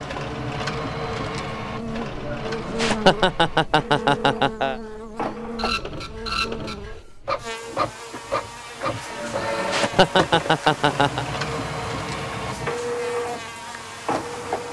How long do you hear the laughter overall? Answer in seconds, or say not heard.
5 s.